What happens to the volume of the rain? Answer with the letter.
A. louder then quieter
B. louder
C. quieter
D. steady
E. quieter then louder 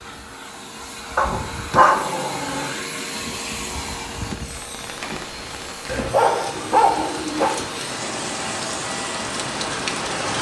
B.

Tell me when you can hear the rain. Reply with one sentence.
The rain can be heard from 4.2 to 10.3 s.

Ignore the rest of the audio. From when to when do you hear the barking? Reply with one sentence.
The barking can be heard from 1.1 to 2.7 s and from 5.8 to 7.5 s.